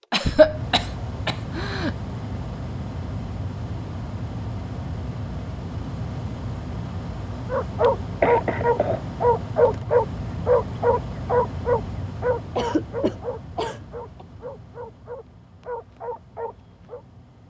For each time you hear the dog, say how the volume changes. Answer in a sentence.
You can hear the dog from 7.5 to 17.0 s, getting quieter.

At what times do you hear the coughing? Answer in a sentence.
The coughing can be heard from 0.1 to 1.9 s, from 8.2 to 9.0 s and from 12.6 to 14.2 s.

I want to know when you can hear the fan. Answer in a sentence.
You can hear the fan from 0.0 to 17.4 s.